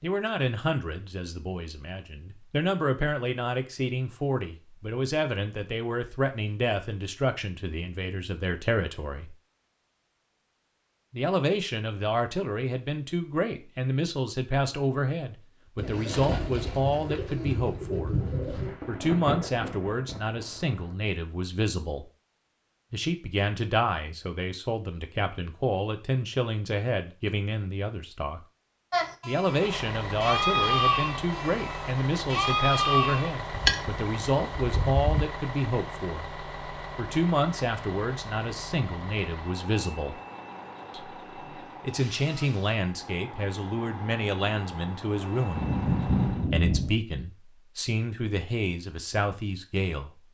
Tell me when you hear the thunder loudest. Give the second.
46 s.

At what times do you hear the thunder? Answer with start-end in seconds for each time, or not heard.
16.9-20.9, 45.5-47.0.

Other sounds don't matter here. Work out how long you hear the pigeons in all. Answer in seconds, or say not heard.
3 s.